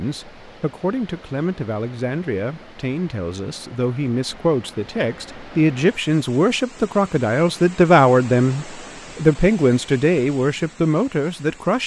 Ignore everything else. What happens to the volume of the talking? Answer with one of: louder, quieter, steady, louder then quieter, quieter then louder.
louder.